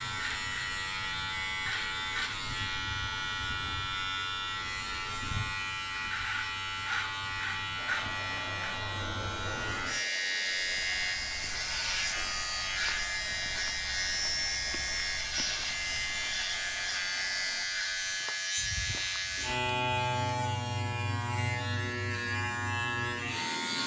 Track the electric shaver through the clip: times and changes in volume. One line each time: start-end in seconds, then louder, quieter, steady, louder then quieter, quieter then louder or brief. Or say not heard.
0.0-23.8 steady.